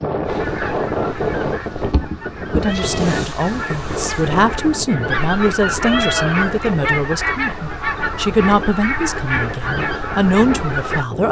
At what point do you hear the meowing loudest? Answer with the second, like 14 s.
6 s.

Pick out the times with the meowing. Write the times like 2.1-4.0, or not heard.
2.5-3.2, 5.8-6.5.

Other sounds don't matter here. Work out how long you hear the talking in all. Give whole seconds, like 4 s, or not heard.
9 s.